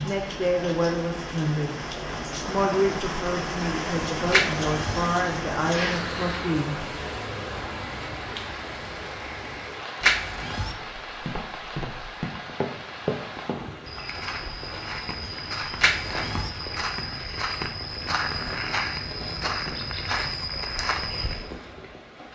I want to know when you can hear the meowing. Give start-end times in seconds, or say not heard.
4.3-5.0, 10.0-10.8, 15.8-16.5.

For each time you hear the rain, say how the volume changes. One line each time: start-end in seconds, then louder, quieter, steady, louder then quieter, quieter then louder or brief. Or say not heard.
0.0-22.2 quieter.